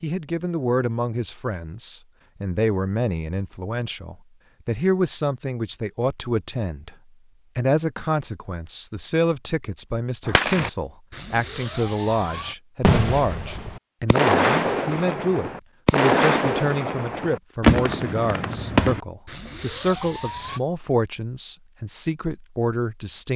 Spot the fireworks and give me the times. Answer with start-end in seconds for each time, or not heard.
10.2-20.6.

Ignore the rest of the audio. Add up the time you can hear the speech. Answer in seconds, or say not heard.
23 s.